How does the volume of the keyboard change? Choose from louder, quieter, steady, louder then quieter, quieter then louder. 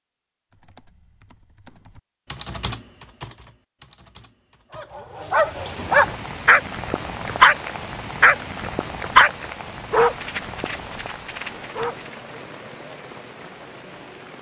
louder then quieter.